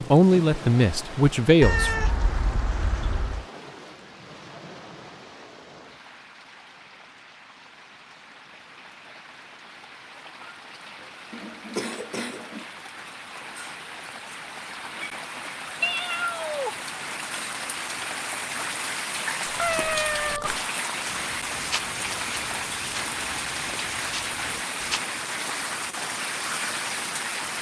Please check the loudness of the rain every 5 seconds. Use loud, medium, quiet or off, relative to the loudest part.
medium, quiet, medium, loud, loud, loud.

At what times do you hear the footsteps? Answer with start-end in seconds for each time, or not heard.
19.6-25.1.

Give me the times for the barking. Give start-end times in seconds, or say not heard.
not heard.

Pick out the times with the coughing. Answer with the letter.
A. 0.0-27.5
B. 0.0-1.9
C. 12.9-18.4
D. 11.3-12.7
D.